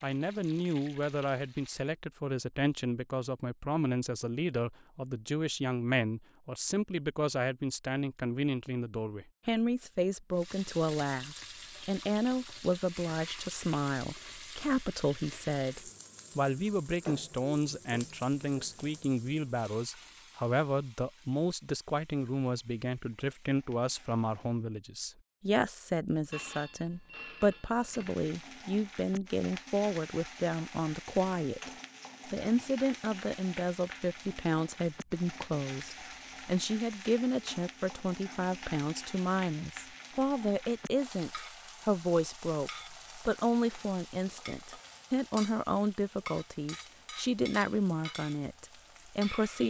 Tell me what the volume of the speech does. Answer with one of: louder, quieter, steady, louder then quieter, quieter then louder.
steady.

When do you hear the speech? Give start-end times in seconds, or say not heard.
0.0-31.7, 32.3-49.6.